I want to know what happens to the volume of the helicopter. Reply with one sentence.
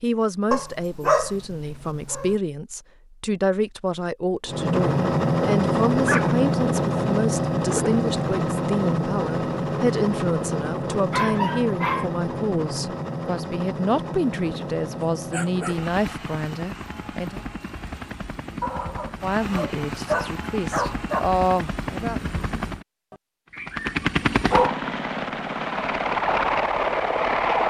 The volume of the helicopter goes down, then up.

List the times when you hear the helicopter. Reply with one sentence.
You can hear the helicopter from 4.5 to 27.6 s.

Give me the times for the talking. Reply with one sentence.
The talking can be heard from 0.0 to 17.4 s and from 19.2 to 22.2 s.